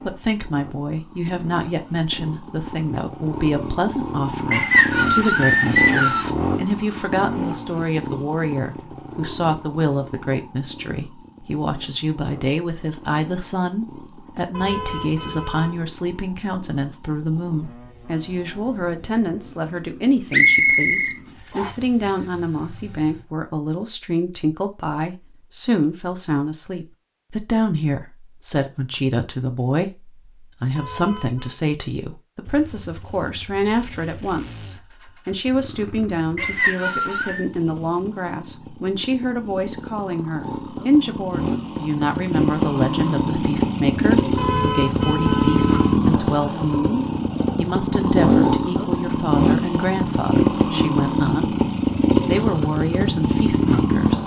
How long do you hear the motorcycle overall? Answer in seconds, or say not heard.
45 s.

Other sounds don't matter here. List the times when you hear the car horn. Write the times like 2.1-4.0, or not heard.
14.5-15.8, 30.8-31.6, 44.4-46.0.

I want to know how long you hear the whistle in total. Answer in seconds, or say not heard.
4 s.